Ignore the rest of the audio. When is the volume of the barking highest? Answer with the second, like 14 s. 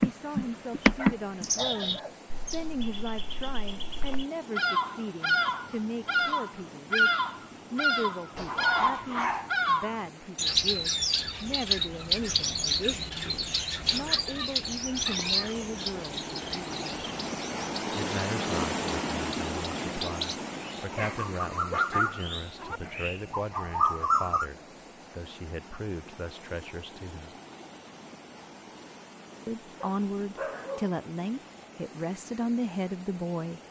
9 s.